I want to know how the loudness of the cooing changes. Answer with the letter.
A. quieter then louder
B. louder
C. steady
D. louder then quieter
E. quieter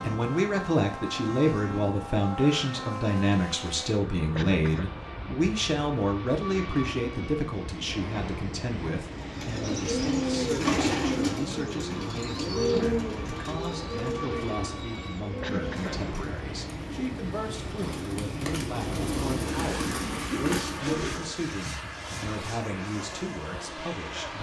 A.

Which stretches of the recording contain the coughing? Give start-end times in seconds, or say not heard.
4.3-5.0, 15.4-16.1.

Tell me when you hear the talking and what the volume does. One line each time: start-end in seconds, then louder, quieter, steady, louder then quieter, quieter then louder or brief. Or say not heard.
0.0-24.3 quieter.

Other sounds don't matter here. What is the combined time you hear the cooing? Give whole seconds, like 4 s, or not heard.
12 s.